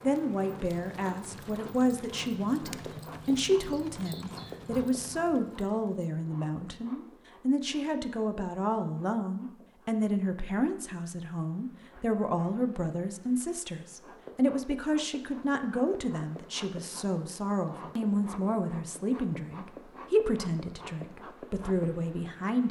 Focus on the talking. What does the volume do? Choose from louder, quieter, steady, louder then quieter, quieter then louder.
steady.